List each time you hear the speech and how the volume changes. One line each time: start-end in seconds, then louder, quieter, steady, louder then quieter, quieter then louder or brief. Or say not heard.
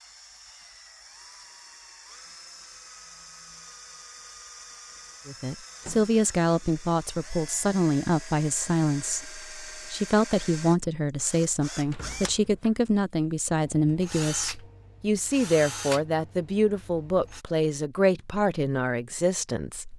5.2-19.9 steady.